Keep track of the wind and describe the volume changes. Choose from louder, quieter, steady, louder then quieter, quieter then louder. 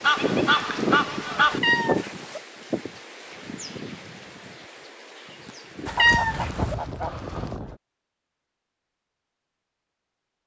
quieter then louder.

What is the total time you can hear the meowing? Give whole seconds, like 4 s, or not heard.
2 s.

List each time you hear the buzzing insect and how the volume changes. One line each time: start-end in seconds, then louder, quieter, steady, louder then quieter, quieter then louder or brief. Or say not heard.
not heard.